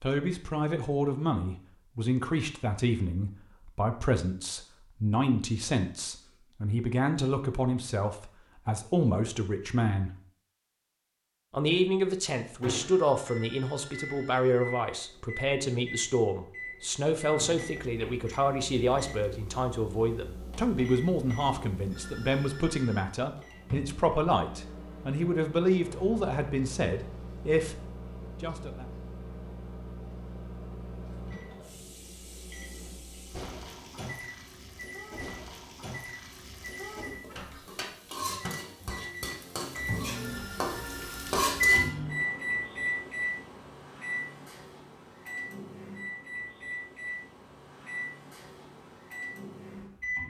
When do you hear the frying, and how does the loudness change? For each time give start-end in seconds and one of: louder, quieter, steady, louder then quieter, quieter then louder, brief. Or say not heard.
31.6-41.9 louder.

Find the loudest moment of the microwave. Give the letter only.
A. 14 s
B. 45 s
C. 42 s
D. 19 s
C.